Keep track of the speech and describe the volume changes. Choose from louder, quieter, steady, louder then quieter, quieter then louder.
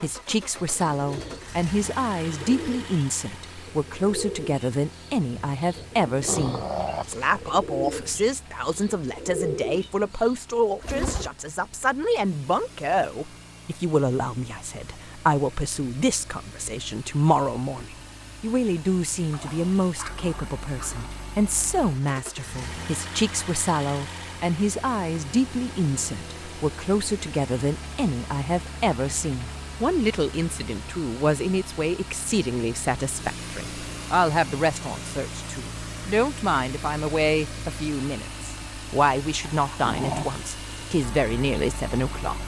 steady.